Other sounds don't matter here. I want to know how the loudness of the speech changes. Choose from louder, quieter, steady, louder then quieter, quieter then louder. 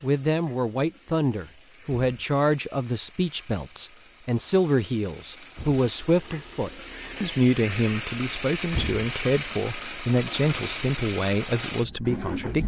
steady.